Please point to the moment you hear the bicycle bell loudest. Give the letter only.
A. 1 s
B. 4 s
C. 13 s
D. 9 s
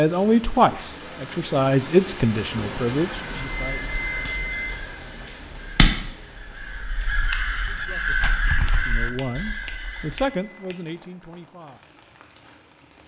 B.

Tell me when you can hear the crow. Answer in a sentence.
The crow can be heard from 3.1 to 10.2 s.